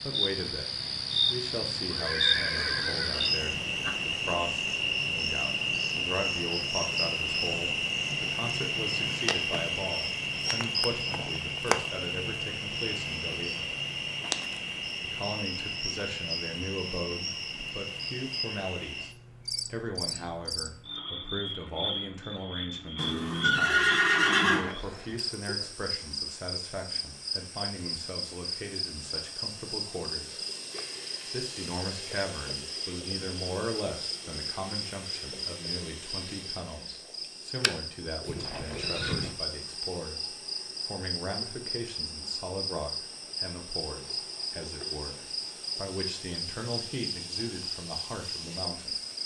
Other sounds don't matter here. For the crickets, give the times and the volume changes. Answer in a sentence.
You can hear the crickets from 0.0 to 49.2 s, getting quieter.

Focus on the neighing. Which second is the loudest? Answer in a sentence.
The volume of the neighing peaks at 24 seconds.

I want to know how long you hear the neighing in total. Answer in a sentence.
You can hear the neighing for 5 seconds altogether.